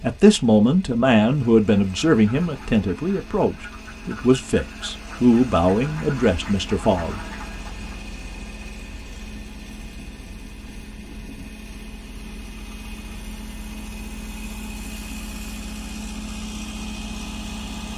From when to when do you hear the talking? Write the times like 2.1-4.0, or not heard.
0.0-7.3.